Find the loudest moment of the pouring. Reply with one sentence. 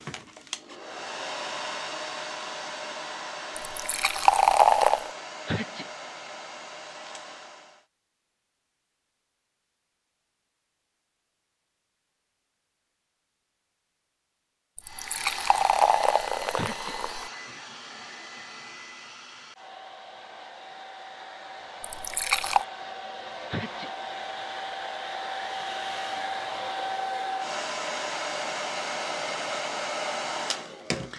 The loudest moment of the pouring is at 5 seconds.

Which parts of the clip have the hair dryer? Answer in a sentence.
The hair dryer can be heard from 0.0 to 7.8 s and from 14.8 to 31.1 s.